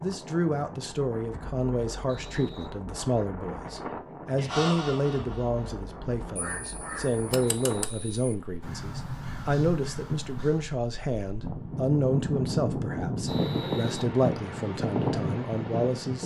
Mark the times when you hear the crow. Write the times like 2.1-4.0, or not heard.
4.3-10.7.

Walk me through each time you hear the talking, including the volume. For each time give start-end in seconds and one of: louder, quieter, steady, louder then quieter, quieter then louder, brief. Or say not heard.
0.0-16.2 steady.